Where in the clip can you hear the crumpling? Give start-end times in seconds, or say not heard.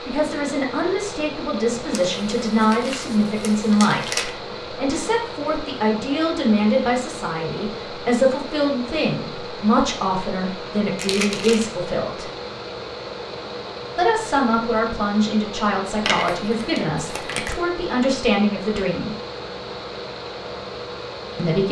1.9-4.3, 10.9-11.7, 16.1-17.6.